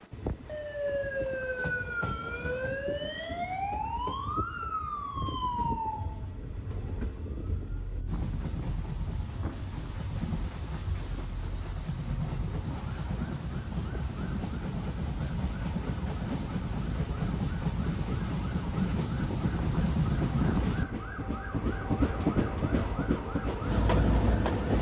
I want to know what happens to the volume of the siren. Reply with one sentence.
The volume of the siren goes down.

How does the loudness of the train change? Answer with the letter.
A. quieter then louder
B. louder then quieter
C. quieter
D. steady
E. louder
E.